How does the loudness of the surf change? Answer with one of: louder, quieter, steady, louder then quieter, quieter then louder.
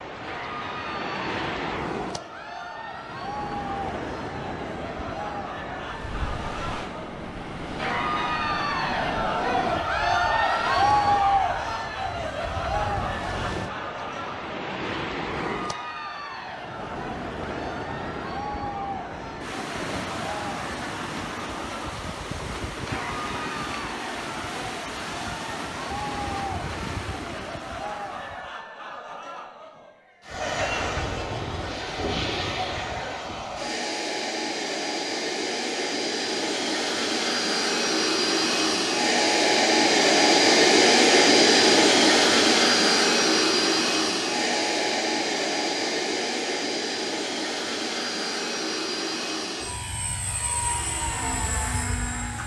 steady.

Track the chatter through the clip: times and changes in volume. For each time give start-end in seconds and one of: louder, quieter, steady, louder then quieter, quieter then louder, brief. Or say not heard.
0.1-33.3 louder then quieter.